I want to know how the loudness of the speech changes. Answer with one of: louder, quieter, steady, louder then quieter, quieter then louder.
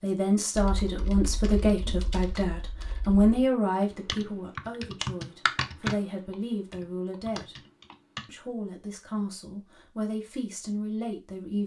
quieter.